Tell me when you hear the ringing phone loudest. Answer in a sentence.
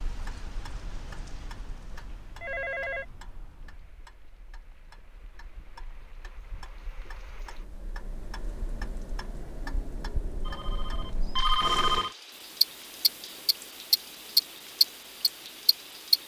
The volume of the ringing phone peaks at 12 seconds.